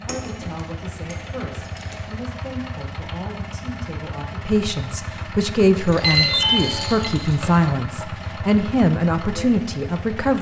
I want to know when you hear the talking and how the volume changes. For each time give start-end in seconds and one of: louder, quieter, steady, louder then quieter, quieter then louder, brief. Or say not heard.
0.0-10.3 louder.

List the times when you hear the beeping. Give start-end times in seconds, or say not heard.
6.0-7.1.